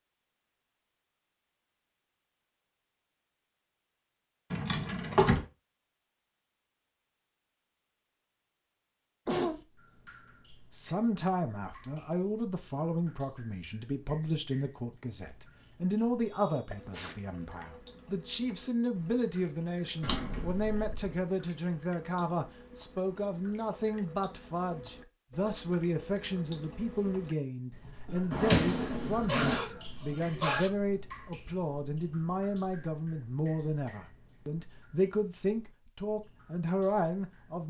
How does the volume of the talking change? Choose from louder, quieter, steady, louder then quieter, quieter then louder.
steady.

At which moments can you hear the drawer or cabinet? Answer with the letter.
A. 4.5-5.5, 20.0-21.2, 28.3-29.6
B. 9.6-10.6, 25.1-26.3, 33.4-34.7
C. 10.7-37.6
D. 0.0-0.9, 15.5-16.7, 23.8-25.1
A.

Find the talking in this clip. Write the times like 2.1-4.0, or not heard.
10.7-37.6.